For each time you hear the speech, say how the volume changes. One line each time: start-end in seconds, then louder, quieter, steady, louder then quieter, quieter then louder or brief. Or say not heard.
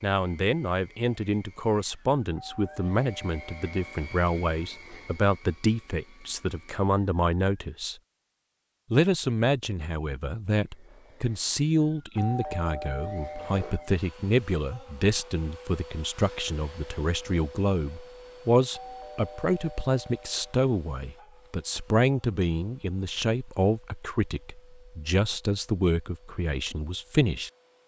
0.0-8.0 steady
8.9-27.5 steady.